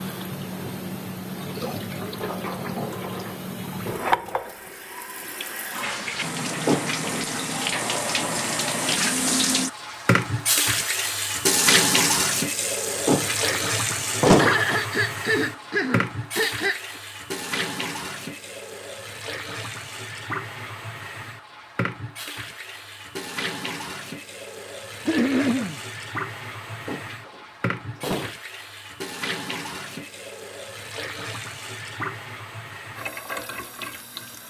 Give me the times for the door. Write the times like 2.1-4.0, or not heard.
6.5-7.2, 12.9-14.7, 26.7-28.4.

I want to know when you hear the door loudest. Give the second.
14 s.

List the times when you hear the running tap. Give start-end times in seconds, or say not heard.
0.0-34.4.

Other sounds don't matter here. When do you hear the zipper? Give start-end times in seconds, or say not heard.
not heard.